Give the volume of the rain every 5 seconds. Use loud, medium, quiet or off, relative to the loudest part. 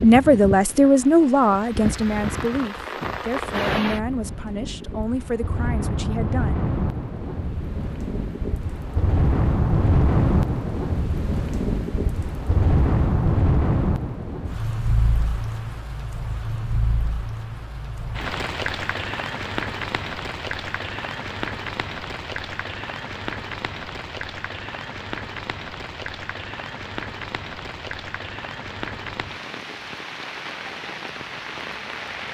medium, loud, loud, medium, medium, medium, medium.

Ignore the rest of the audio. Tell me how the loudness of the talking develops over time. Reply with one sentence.
The loudness of the talking goes down.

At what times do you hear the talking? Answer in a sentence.
The talking can be heard from 0.0 to 6.7 s.